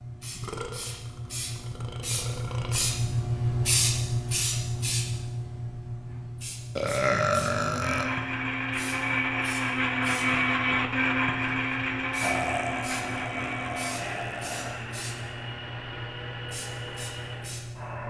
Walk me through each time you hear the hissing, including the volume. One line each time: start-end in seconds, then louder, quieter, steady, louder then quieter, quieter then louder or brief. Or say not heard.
0.0-18.0 quieter.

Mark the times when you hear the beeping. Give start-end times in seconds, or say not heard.
not heard.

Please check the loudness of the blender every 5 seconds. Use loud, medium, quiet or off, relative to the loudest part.
off, loud, loud, medium.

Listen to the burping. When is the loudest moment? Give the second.
7 s.